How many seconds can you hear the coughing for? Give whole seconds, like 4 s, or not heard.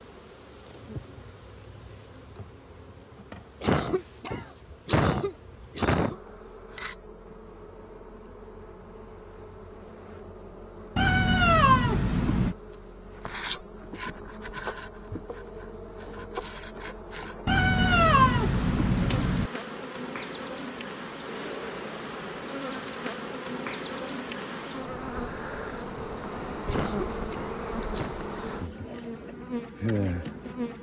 4 s.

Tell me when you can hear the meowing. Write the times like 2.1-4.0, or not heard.
10.9-12.6, 17.4-19.5.